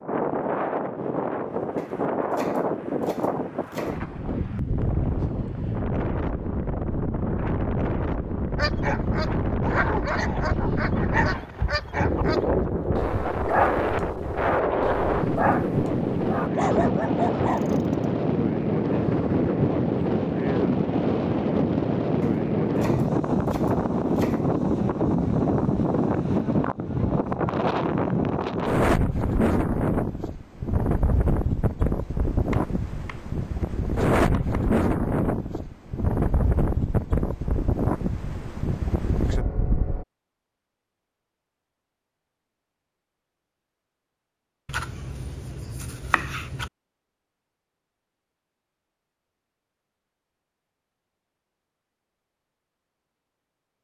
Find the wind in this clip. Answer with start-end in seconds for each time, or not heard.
0.0-40.0.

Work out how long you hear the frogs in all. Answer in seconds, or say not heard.
not heard.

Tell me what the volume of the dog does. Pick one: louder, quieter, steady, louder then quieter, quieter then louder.
steady.